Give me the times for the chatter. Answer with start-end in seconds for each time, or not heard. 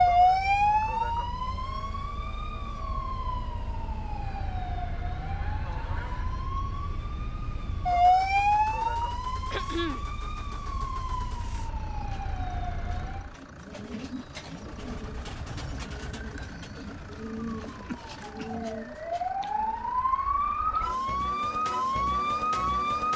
not heard.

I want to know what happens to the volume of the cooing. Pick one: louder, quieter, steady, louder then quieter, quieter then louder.
louder.